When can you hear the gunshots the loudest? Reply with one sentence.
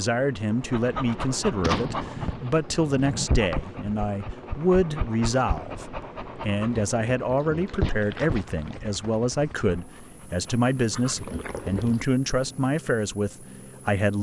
The loudest moment of the gunshots is at 2 seconds.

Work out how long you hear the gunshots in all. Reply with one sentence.
The gunshots can be heard for 2 seconds in total.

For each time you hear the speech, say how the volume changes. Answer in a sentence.
The speech can be heard from 0.0 to 14.1 s, at a steady volume.